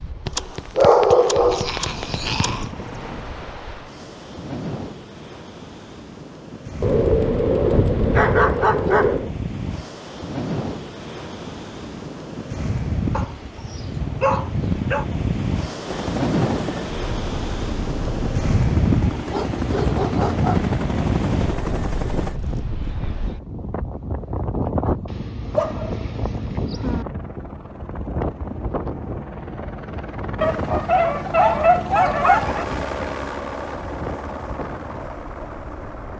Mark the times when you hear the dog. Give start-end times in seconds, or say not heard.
0.2-2.7, 6.8-9.3, 13.1-15.1, 19.2-20.7, 25.1-27.1, 30.4-32.6.